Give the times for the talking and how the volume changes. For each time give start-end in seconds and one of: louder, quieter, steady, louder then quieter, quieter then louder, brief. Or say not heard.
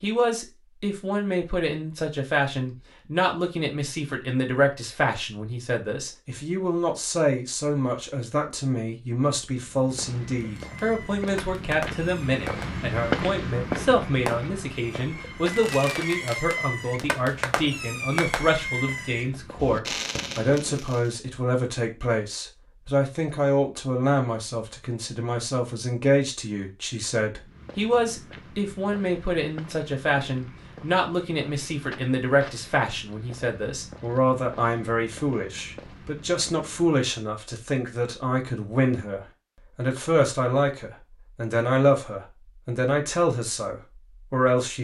0.0-44.7 steady.